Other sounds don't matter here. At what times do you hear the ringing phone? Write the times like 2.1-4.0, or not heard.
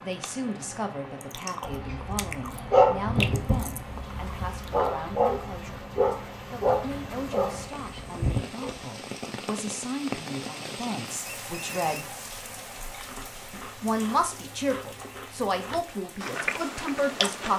11.2-12.3.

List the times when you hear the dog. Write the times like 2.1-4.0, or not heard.
1.6-8.8.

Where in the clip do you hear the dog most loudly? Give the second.
3 s.